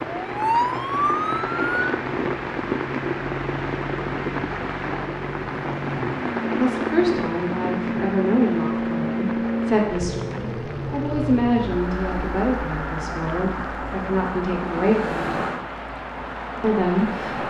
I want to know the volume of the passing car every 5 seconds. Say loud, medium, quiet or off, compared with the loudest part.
medium, loud, loud, loud.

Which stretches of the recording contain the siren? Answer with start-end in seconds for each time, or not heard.
0.1-1.9.